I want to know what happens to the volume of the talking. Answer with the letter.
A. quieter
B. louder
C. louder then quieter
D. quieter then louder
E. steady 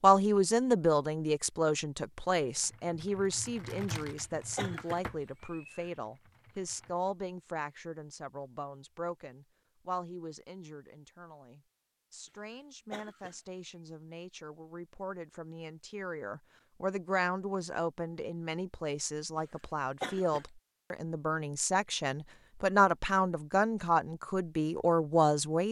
D.